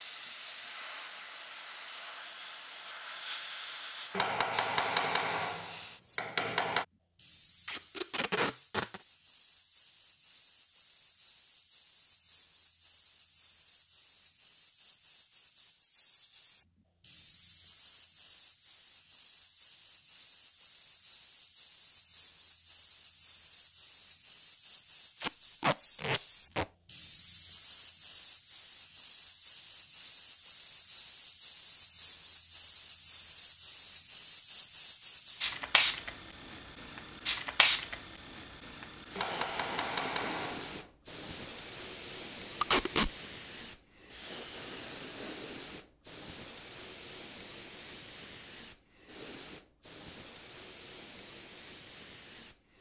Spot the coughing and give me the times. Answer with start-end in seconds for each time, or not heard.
not heard.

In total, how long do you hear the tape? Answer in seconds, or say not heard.
3 s.